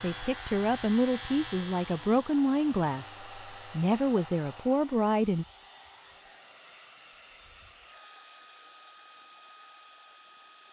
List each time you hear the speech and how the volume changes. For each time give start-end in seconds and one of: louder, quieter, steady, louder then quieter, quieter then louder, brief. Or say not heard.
0.0-5.5 steady.